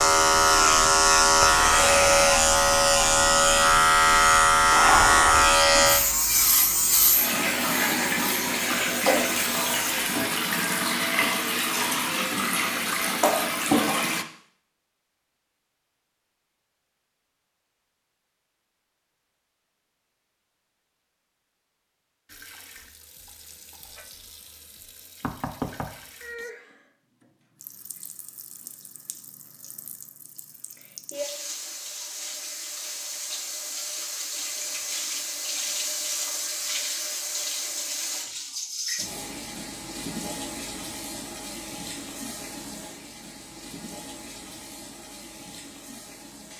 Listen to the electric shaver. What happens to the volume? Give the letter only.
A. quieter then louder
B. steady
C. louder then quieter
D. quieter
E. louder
D.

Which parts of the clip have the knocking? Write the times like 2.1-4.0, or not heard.
25.2-26.5.